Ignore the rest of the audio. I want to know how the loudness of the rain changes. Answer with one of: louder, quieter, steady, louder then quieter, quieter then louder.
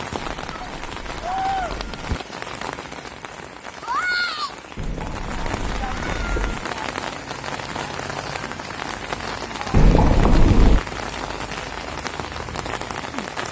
steady.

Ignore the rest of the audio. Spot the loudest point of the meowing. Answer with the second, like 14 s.
10 s.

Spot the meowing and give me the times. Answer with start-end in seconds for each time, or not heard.
0.1-2.2, 4.8-6.7, 9.7-10.8.